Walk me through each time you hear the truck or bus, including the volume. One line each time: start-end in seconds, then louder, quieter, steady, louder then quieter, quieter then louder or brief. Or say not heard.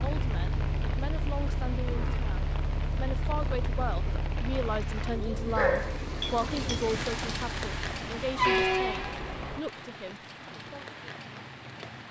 0.0-9.6 quieter then louder.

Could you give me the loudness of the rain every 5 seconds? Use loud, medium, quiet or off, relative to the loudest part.
medium, loud, medium.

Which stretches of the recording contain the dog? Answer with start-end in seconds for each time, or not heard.
5.5-6.8.